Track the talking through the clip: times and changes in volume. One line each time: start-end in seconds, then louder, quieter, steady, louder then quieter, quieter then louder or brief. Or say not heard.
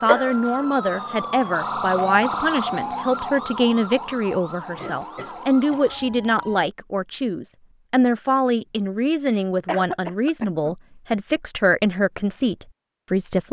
0.0-13.4 steady.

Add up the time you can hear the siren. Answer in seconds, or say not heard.
7 s.